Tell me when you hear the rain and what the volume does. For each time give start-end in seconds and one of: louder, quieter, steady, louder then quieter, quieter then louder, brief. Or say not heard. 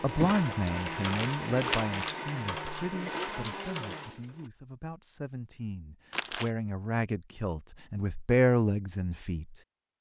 not heard.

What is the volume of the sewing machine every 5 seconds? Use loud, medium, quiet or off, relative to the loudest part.
loud, off.